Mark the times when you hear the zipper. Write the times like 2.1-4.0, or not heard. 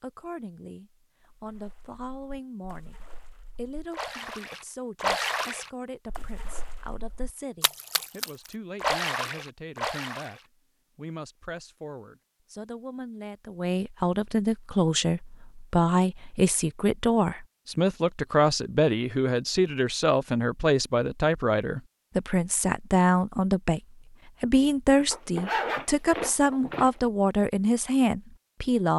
25.1-26.9.